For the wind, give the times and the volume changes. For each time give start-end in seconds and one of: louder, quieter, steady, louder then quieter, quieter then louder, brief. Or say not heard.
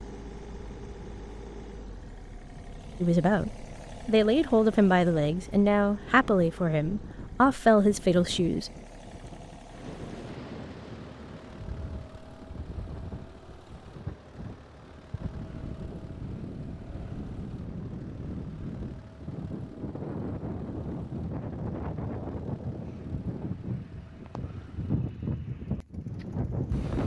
0.1-27.0 louder.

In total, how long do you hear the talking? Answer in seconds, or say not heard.
6 s.